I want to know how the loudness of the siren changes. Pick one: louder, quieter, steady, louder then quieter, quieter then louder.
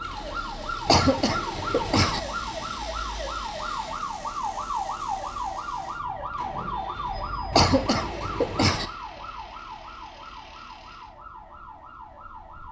quieter.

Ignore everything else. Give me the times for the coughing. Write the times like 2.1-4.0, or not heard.
0.8-2.2, 7.5-8.8.